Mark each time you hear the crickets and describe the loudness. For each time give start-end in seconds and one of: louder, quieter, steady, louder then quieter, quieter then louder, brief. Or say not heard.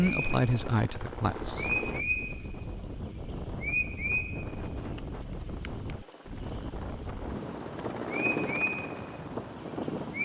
0.0-10.2 steady.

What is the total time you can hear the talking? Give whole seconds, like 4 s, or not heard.
2 s.